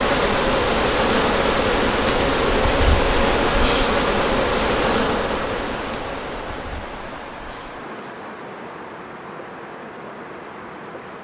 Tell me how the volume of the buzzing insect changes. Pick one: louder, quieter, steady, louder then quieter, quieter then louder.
quieter.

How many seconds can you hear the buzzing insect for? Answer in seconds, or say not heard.
11 s.